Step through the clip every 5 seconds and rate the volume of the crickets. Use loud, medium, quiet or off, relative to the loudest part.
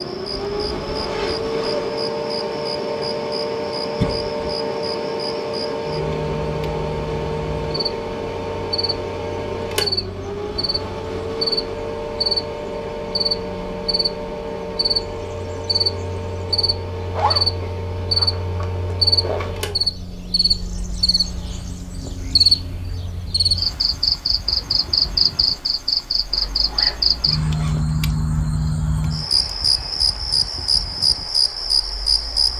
quiet, medium, medium, loud, loud, loud, loud.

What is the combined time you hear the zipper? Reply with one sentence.
The zipper can be heard for 5 seconds in total.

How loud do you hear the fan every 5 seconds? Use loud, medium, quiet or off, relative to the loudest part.
loud, loud, loud, medium, quiet, quiet, quiet.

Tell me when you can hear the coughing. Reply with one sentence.
You can hear the coughing from 4.0 to 4.5 s.